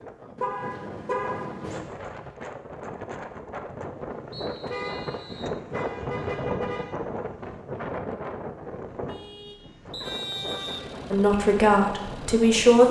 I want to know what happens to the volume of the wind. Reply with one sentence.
The loudness of the wind goes up, then down.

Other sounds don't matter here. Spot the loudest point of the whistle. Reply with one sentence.
The loudest moment of the whistle is at 10 seconds.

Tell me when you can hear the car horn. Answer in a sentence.
You can hear the car horn from 0.3 to 1.8 s, from 4.7 to 6.9 s and from 9.1 to 10.9 s.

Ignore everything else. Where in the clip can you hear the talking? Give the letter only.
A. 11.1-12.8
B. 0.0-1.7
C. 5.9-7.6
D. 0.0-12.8
A.